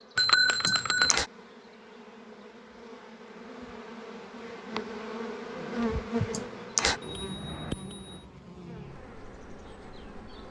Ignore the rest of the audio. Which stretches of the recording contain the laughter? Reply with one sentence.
The laughter can be heard from 0.7 to 1.3 s and from 6.3 to 7.0 s.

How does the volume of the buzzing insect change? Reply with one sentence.
The volume of the buzzing insect goes up, then down.